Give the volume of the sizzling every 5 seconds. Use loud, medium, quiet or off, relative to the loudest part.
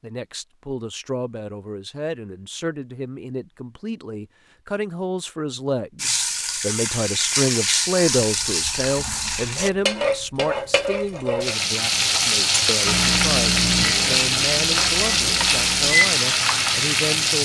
off, medium, loud, loud.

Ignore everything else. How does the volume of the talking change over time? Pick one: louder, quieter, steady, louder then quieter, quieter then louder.
louder then quieter.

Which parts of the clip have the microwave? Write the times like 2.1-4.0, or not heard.
12.8-17.2.